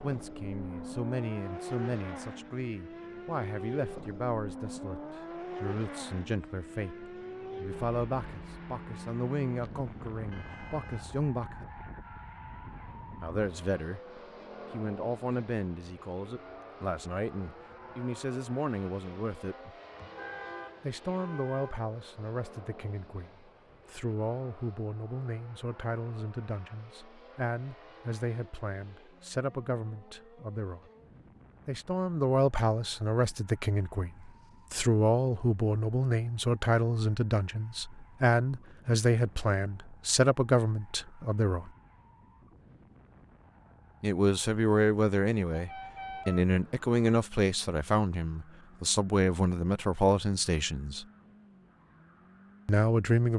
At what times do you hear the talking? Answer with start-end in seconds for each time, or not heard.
0.0-11.6, 13.2-19.7, 20.8-30.8, 31.6-41.7, 44.0-51.0, 52.6-53.3.